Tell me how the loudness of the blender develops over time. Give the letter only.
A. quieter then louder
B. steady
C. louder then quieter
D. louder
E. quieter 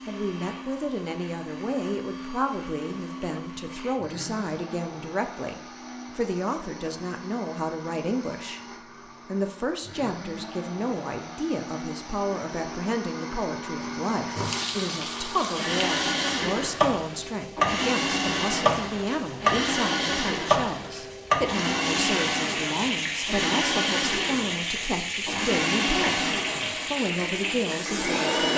D.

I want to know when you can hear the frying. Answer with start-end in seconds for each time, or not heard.
14.3-28.5.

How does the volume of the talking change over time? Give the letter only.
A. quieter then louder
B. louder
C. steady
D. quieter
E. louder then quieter
C.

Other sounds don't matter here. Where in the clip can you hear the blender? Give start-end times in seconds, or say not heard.
0.0-28.5.